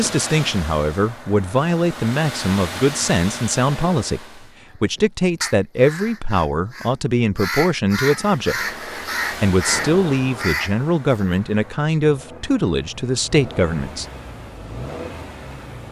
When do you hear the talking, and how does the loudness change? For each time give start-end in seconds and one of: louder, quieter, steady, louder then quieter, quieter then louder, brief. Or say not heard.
0.0-14.1 steady.